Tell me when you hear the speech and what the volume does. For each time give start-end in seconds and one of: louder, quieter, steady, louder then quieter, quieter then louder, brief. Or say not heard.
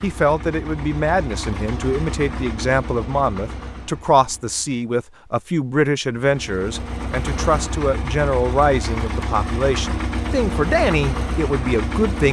0.0-12.2 steady.